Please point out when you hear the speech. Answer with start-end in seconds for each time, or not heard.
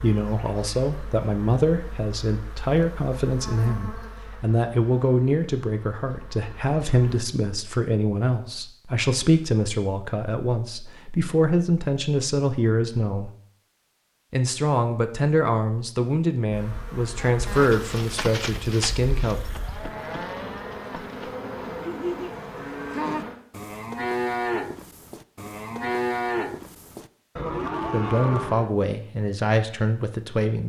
0.0-13.3, 14.3-19.4, 27.9-30.6.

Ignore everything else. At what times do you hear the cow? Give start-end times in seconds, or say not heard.
17.1-28.7.